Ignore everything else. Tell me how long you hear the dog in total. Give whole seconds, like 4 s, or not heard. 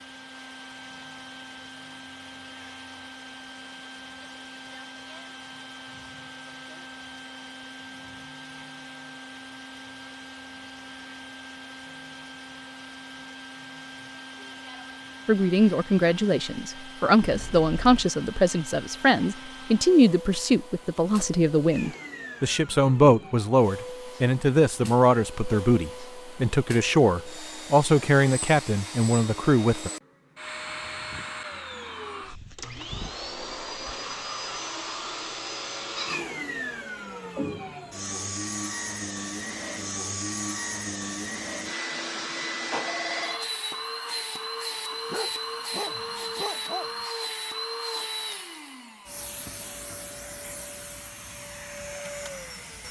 2 s.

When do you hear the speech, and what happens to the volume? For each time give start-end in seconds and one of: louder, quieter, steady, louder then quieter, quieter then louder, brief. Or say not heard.
15.2-29.9 steady.